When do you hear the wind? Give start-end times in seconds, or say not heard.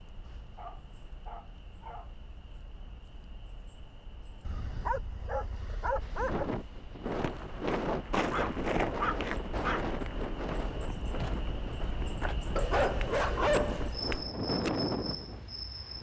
6.0-15.9.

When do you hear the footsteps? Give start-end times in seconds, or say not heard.
7.0-15.3.